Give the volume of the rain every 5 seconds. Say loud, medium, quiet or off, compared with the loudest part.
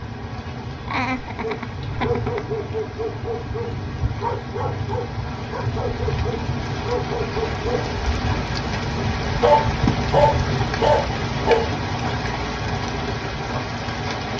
medium, loud, loud.